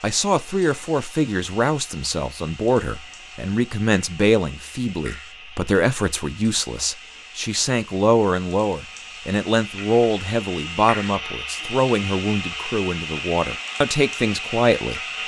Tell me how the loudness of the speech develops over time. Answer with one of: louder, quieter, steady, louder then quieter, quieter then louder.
steady.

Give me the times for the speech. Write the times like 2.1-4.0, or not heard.
0.0-15.0.